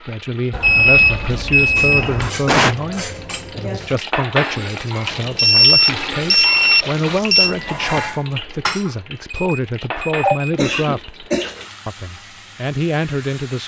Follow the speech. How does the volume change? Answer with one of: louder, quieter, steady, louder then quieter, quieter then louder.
steady.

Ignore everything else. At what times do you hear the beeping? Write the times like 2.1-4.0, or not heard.
0.5-2.3, 5.1-7.5, 9.3-10.5.